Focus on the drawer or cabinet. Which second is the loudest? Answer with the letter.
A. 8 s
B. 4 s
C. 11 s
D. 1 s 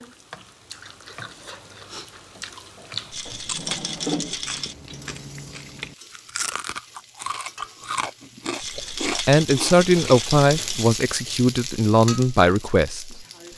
B.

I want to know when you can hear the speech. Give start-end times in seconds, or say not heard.
8.8-13.2.